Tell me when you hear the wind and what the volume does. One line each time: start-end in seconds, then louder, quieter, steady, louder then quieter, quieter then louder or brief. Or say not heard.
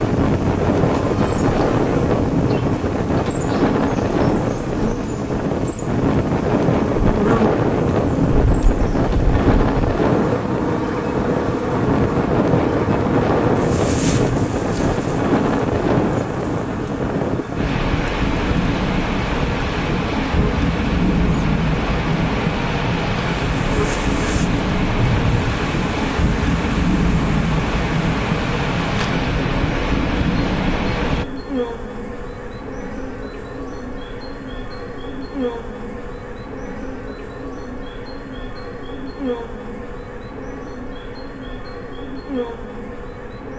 0.0-31.2 steady.